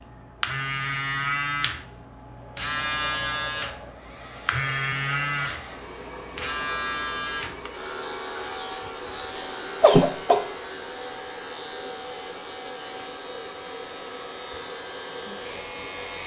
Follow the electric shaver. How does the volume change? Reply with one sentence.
The volume of the electric shaver goes down.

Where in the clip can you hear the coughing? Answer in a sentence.
You can hear the coughing from 9.3 to 10.4 s.